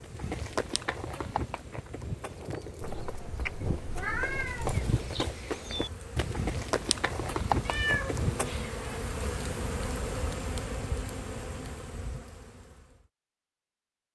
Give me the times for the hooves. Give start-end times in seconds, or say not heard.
0.0-8.7.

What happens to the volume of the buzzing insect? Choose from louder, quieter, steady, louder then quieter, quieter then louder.
louder.